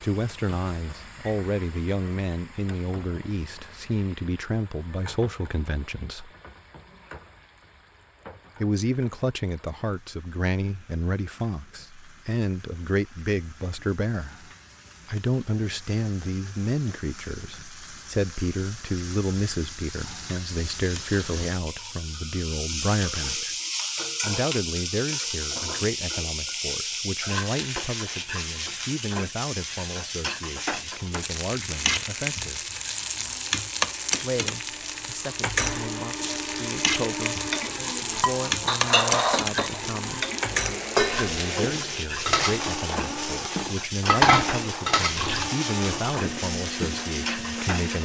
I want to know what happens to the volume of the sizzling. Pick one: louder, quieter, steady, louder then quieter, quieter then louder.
louder.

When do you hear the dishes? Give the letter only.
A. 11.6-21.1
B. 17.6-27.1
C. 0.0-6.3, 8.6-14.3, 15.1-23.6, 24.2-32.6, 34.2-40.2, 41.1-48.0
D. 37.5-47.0
D.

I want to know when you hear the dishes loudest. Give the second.
44 s.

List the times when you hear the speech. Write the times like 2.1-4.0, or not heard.
0.0-6.3, 8.6-14.3, 15.1-23.6, 24.2-32.6, 34.2-40.2, 41.1-48.0.